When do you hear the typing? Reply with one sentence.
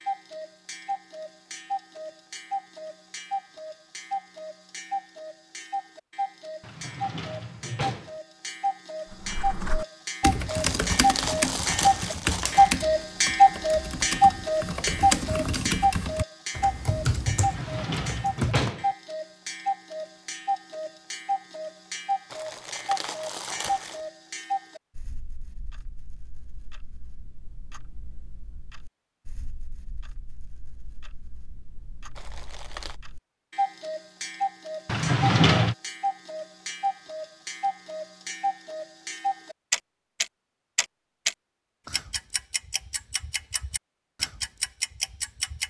The typing can be heard from 9.1 to 18.7 s.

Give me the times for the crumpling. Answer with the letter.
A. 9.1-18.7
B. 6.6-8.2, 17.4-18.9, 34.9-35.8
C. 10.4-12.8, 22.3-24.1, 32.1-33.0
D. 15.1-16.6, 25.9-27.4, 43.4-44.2
C.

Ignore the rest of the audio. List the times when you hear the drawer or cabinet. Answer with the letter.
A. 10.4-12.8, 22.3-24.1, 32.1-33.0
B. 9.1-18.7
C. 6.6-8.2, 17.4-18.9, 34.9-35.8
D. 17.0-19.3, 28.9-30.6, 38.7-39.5
C.